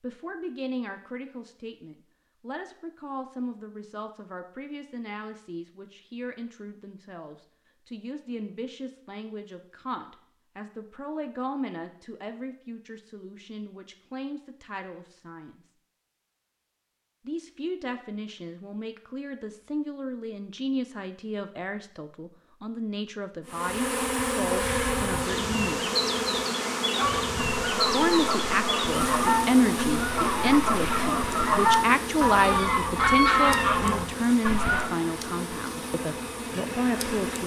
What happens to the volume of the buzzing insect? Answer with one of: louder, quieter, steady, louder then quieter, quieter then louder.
quieter.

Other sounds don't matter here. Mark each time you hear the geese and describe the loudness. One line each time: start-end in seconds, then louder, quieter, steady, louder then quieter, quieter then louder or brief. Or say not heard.
26.9-34.9 louder.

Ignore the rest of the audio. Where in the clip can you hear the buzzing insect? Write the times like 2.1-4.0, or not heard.
23.4-37.4.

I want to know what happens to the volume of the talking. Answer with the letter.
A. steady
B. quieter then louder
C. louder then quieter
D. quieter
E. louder
E.